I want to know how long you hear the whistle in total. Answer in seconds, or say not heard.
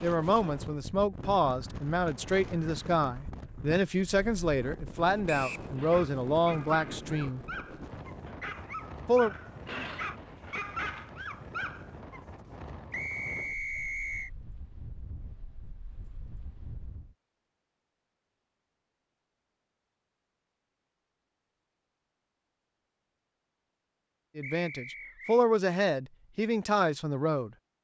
3 s.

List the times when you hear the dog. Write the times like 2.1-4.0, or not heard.
5.8-12.2.